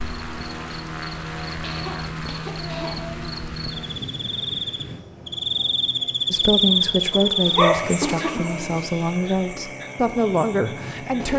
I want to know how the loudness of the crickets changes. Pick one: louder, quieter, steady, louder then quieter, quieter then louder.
louder then quieter.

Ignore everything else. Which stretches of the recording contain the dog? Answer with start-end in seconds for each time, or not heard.
7.1-8.9.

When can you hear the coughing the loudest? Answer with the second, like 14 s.
8 s.